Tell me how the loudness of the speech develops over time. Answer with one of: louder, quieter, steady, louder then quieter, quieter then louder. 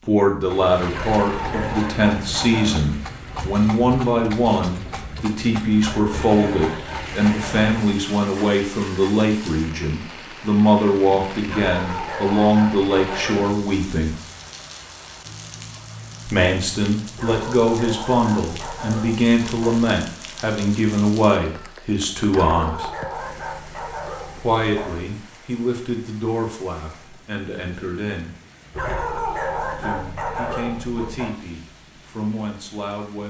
quieter.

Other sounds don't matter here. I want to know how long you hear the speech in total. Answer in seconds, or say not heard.
28 s.